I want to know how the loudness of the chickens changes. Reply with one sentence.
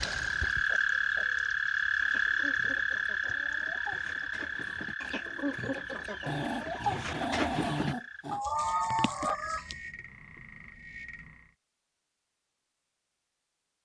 The volume of the chickens goes up.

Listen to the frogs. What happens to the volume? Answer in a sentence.
The volume of the frogs goes down.